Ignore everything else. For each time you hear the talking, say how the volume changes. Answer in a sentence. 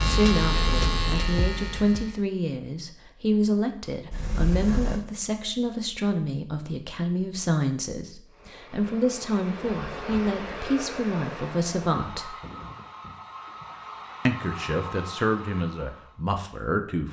You can hear the talking from 0.0 to 12.3 s, at a steady volume; and briefly from 14.2 to 17.0 s.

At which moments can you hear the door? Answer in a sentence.
The door can be heard from 4.1 to 5.0 s.